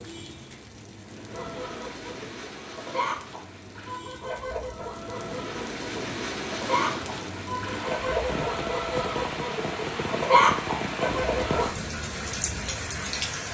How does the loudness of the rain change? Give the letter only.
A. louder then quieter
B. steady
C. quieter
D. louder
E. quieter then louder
D.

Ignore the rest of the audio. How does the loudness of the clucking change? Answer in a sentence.
The loudness of the clucking goes up.